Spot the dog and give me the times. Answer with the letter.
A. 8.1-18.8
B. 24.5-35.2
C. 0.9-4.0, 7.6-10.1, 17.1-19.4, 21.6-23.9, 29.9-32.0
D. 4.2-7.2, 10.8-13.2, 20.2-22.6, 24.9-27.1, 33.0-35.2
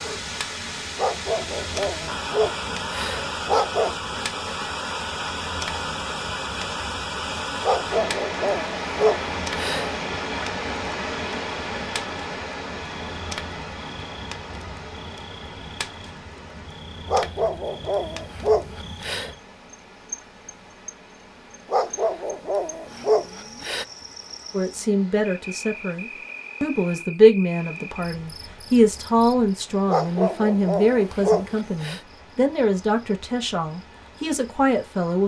C.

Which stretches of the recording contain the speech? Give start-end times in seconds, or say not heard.
24.5-35.2.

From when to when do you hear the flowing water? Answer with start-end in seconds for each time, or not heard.
0.0-35.2.